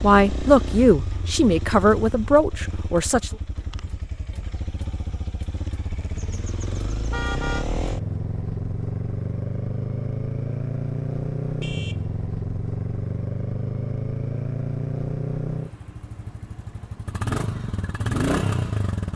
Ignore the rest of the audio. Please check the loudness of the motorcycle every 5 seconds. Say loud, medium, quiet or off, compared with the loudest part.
medium, loud, loud, loud.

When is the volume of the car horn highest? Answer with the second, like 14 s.
7 s.